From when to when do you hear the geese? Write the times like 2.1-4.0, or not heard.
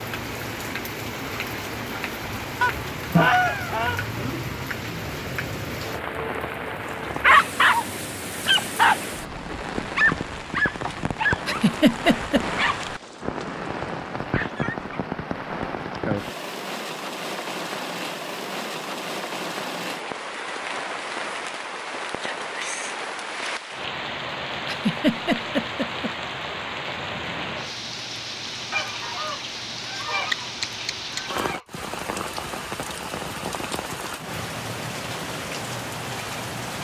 2.6-4.0, 28.7-31.6.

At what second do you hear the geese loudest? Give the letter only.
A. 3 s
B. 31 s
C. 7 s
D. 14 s
A.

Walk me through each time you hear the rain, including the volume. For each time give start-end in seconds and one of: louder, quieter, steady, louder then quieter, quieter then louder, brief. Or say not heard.
0.0-36.7 steady.